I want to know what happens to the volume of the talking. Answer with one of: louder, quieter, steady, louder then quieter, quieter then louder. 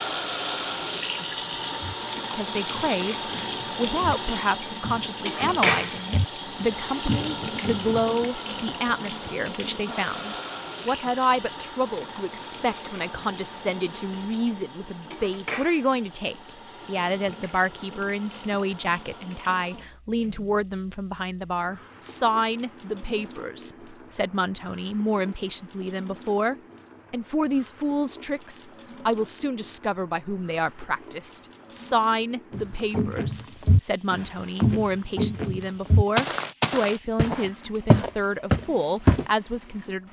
steady.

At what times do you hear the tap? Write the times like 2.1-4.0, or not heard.
0.0-40.0.